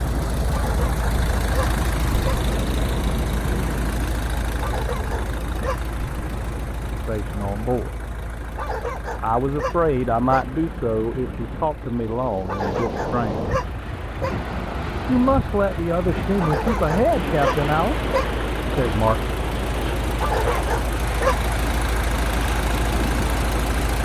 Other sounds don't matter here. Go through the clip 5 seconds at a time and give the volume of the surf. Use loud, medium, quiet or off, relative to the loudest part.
loud, medium, loud, loud, loud.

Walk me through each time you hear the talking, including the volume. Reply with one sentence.
You can hear the talking briefly from 7.0 to 7.9 s; from 9.2 to 13.4 s, getting quieter; briefly from 15.1 to 18.0 s; and briefly from 18.7 to 19.1 s.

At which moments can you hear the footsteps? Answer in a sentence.
The footsteps can't be heard in this clip.